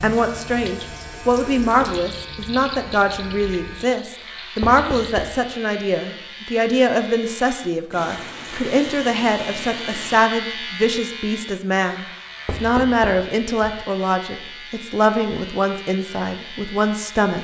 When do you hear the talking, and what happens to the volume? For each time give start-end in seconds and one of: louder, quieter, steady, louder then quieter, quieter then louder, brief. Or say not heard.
0.0-17.3 steady.